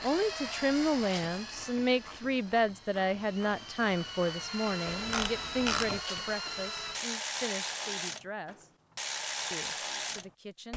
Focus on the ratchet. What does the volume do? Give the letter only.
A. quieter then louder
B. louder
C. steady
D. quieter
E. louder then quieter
B.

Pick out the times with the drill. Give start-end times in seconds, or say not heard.
0.0-7.0.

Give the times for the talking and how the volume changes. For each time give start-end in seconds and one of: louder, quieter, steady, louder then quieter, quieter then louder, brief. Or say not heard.
0.0-8.7 quieter
9.5-10.7 brief.